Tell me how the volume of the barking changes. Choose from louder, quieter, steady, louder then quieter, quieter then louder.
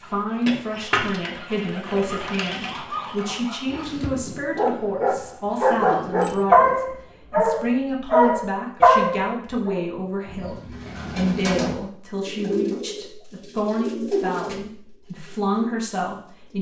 louder.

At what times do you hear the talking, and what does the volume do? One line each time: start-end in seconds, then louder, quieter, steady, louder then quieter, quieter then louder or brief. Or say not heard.
0.0-16.5 steady.